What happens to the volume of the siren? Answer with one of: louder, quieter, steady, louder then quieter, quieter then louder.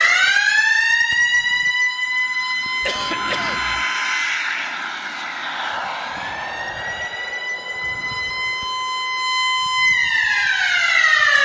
quieter then louder.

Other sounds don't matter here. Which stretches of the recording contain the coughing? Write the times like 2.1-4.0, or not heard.
2.8-3.9.